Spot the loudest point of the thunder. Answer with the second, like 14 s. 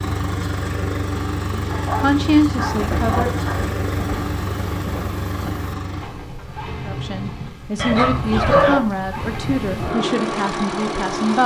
3 s.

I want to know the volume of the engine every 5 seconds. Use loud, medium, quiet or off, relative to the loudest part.
loud, medium, loud.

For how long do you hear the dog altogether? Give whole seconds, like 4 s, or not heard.
3 s.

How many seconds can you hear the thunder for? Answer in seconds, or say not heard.
3 s.